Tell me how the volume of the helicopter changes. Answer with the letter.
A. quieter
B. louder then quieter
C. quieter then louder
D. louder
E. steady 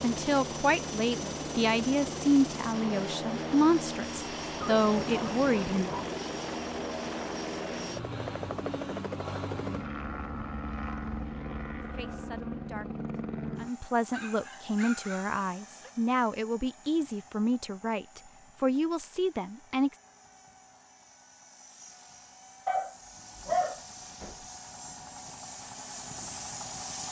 C.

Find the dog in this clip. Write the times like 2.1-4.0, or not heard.
4.6-6.0, 13.7-15.9, 22.6-24.4.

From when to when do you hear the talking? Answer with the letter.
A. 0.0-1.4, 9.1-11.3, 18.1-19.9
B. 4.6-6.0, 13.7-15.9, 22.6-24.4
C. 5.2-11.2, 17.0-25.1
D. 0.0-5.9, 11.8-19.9
D.